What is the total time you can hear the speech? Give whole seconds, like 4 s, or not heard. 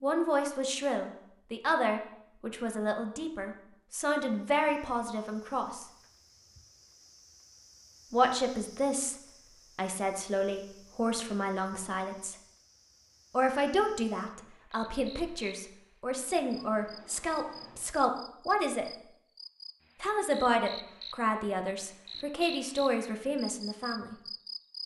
19 s.